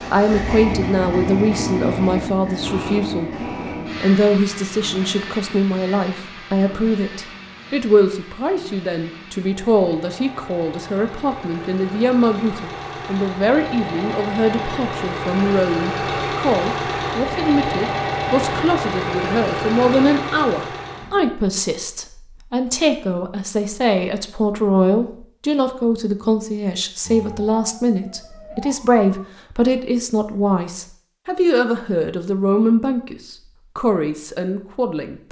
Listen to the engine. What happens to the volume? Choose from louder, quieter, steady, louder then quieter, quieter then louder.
quieter then louder.